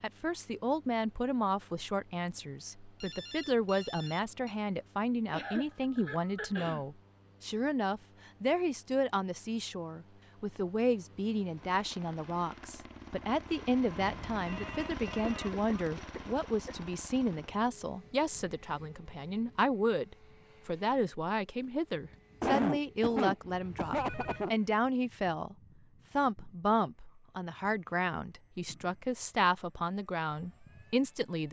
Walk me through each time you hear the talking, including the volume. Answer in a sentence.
The talking can be heard from 0.0 to 31.4 s, at a steady volume.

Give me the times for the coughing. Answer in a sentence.
You can hear the coughing from 5.3 to 6.8 s, from 15.2 to 16.8 s and from 22.1 to 24.5 s.